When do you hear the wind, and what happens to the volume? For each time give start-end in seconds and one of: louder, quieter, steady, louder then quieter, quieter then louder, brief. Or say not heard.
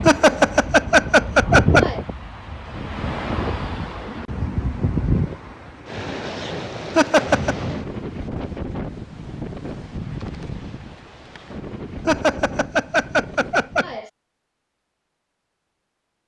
0.0-14.0 quieter.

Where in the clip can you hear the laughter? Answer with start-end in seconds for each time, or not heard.
0.1-2.0, 7.0-7.5, 12.1-14.1.